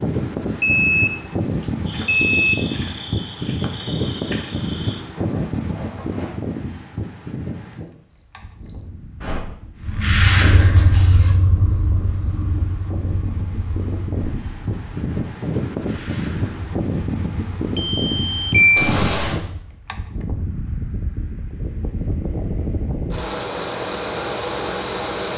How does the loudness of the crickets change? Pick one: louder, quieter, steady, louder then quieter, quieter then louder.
louder then quieter.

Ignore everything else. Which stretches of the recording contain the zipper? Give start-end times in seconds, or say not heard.
5.1-6.3, 10.7-11.3, 18.8-19.4.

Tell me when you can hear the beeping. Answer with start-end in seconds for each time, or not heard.
0.6-2.5, 17.8-18.9.